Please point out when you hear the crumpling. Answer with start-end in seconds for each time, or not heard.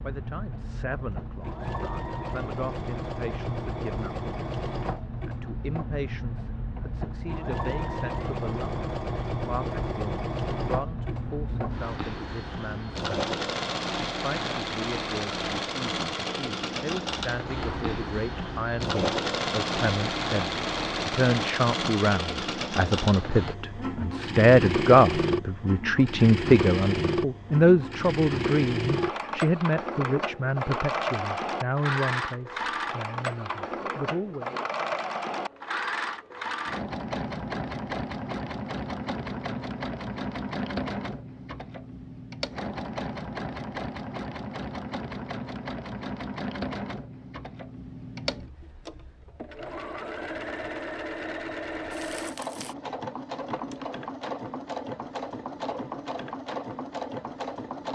51.9-52.8.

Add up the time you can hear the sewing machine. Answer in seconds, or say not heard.
58 s.